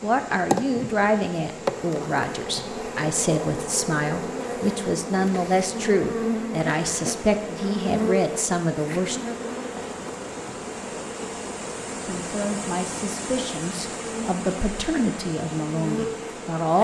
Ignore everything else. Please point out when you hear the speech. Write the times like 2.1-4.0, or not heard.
0.0-9.2, 12.1-16.7.